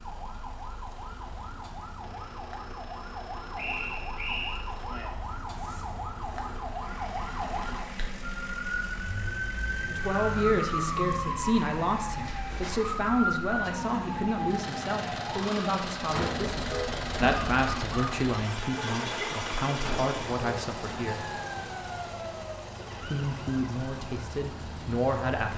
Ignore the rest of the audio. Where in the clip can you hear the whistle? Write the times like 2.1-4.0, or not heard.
3.5-4.6.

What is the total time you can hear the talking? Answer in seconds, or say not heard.
14 s.